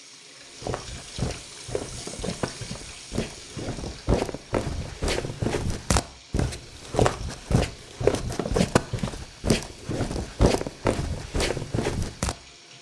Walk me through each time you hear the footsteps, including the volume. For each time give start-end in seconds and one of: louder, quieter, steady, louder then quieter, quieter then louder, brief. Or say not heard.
0.6-12.3 louder.